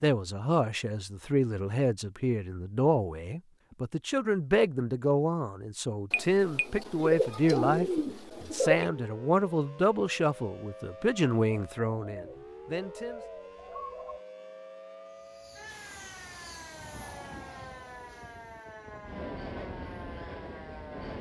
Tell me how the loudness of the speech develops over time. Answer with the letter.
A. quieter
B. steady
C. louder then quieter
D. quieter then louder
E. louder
B.